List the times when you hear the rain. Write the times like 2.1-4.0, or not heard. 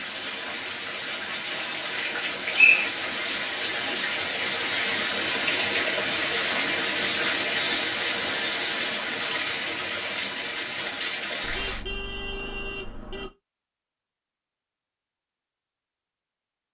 0.0-11.8.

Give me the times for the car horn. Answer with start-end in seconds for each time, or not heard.
11.4-13.3.